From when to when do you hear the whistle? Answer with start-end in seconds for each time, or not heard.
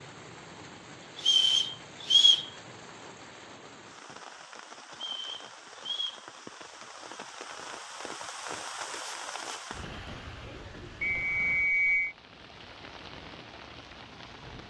1.2-2.5, 5.0-6.2, 11.0-12.2.